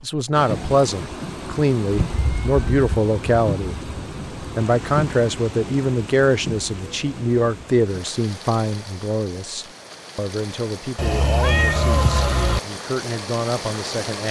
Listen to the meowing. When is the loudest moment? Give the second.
12 s.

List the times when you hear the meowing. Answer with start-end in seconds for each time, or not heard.
2.0-2.9, 10.9-12.6.